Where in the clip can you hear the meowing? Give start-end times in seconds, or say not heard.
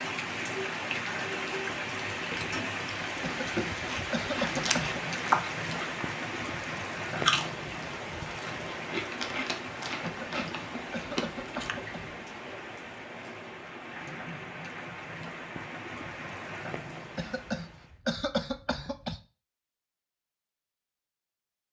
not heard.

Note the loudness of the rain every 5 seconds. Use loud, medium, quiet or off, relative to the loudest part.
loud, loud, medium, medium, off.